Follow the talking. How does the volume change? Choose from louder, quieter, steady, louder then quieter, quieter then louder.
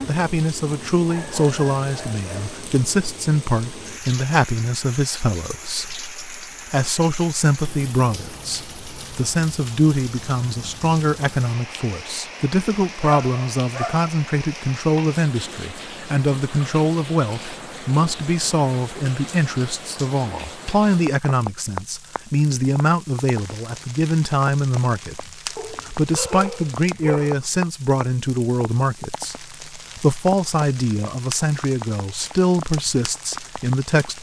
steady.